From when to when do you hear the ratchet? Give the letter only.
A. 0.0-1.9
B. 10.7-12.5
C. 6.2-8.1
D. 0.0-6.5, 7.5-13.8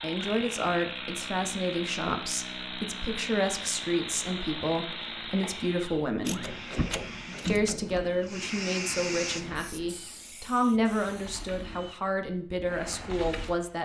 C.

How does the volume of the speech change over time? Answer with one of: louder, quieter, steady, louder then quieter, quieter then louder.
steady.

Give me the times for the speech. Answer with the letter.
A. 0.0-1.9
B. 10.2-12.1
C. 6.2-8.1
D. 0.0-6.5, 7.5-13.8
D.